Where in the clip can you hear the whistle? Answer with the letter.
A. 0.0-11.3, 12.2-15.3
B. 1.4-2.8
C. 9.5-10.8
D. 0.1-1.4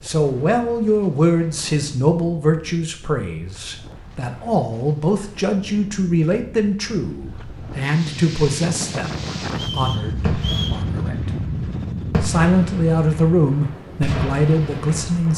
C.